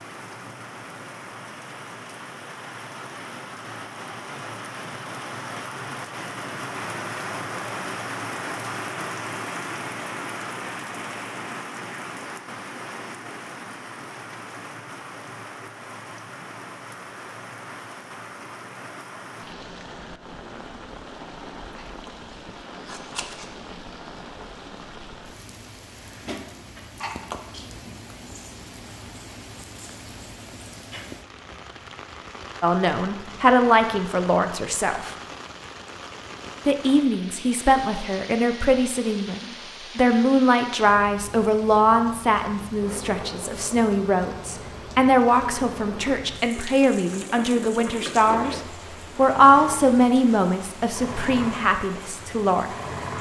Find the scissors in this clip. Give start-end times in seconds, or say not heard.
21.8-23.6, 26.9-27.8.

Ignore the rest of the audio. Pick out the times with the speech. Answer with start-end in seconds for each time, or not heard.
32.6-35.1, 36.6-52.6.